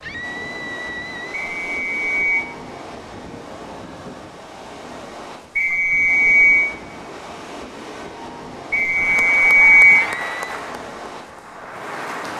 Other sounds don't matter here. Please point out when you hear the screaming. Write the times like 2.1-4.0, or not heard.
0.0-1.4, 9.9-10.6.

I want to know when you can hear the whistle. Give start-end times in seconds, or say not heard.
1.6-2.5, 5.5-6.7, 8.7-10.1.